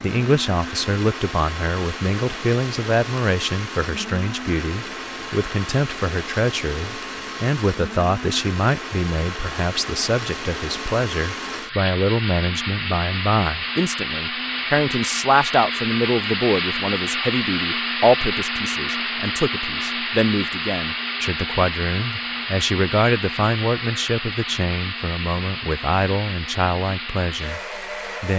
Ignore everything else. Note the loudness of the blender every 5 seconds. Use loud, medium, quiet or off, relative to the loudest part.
medium, medium, loud, loud, loud, medium.